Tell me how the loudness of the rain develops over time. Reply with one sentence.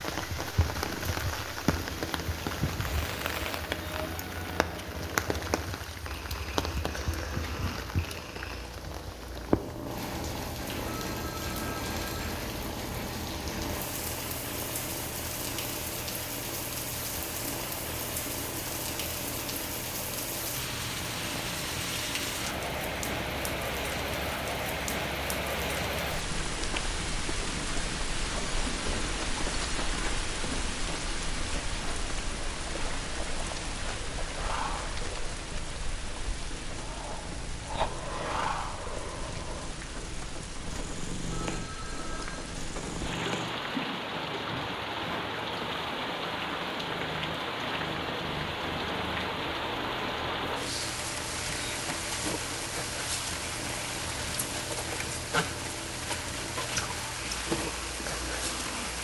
The loudness of the rain stays about the same.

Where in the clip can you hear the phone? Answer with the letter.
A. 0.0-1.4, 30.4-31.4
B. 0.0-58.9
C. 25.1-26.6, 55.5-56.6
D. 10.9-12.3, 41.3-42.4
D.